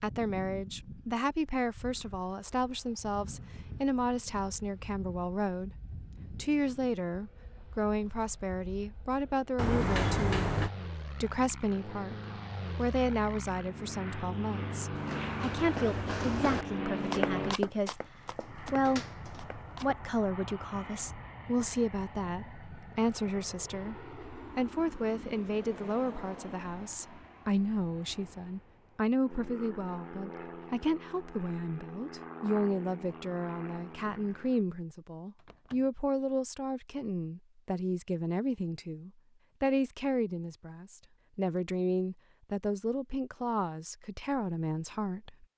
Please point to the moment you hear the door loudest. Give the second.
10 s.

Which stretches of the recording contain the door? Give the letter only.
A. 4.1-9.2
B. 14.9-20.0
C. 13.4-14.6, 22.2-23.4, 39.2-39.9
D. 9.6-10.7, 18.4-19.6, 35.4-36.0
D.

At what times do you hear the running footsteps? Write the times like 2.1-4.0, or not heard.
14.9-20.0.